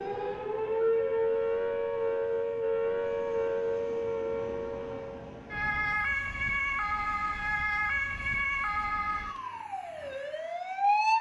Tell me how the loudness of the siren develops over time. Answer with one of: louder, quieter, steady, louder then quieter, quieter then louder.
quieter.